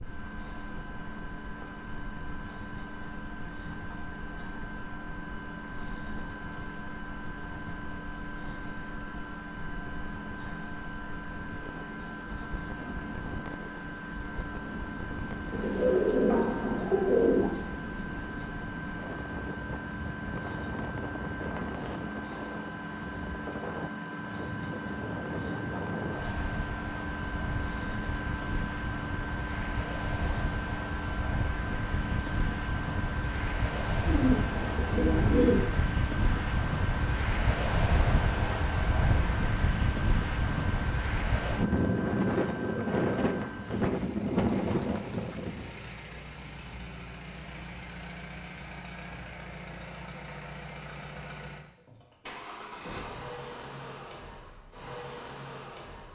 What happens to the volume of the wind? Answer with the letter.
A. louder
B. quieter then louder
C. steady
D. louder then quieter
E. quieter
A.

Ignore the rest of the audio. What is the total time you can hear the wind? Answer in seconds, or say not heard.
46 s.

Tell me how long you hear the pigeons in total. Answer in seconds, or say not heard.
4 s.